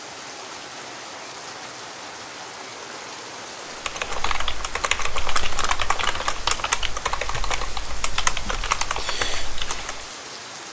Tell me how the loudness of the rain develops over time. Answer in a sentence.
The loudness of the rain stays about the same.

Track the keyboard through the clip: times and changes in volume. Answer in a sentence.
The keyboard can be heard from 3.9 to 10.1 s, at a steady volume.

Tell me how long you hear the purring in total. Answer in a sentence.
The purring can't be heard in this clip.